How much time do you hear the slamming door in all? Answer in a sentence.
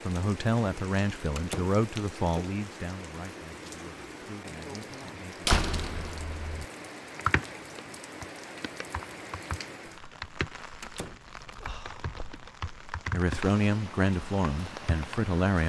You can hear the slamming door for 2 seconds altogether.